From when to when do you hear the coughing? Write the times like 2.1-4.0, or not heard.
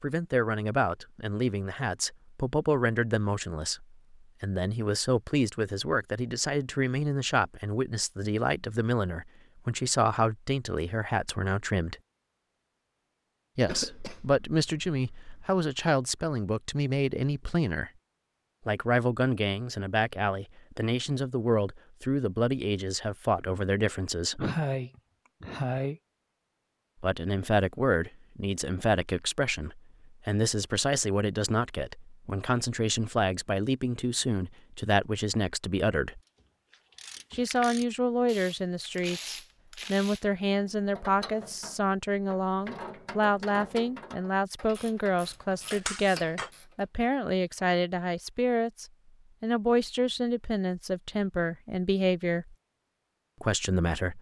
13.7-15.4, 24.4-26.0, 45.7-46.5.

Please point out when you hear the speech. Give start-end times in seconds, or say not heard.
0.0-11.9, 13.6-17.9, 18.6-24.5, 27.0-36.2, 37.3-52.5, 53.4-54.1.